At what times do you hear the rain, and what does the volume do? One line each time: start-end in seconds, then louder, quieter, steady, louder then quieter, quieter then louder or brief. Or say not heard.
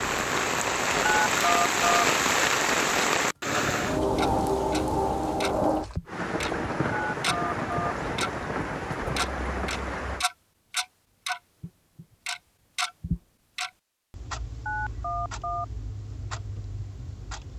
0.0-10.2 quieter.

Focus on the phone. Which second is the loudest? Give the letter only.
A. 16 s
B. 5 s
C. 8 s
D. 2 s
D.